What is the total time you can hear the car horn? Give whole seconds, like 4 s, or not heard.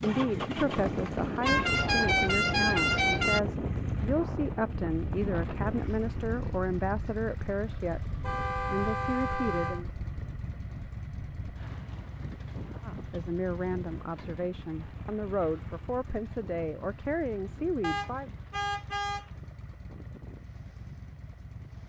5 s.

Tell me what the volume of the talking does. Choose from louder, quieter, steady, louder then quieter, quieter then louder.
steady.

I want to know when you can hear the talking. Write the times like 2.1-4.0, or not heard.
0.0-9.9, 12.8-18.3.